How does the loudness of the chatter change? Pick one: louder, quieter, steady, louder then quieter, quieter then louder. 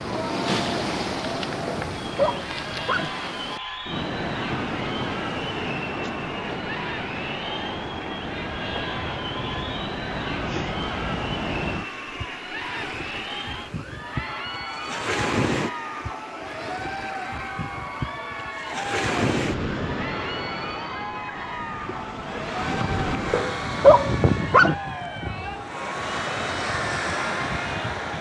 steady.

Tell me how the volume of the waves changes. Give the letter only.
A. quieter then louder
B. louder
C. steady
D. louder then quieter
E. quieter
C.